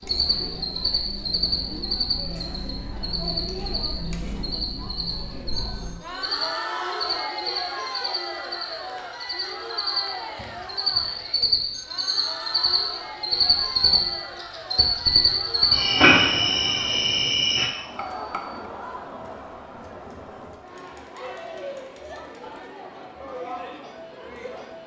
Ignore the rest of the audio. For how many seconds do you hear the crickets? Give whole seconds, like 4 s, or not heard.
18 s.